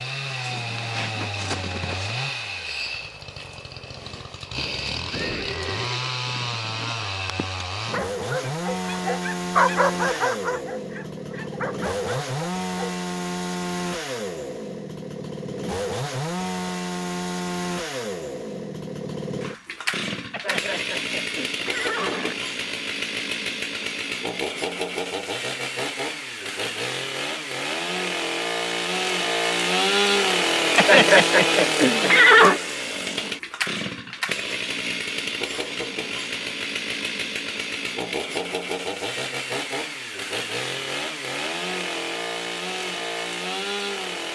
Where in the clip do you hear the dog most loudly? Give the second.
10 s.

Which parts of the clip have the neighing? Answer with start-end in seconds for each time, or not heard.
4.5-6.6, 20.3-22.4, 30.8-32.6.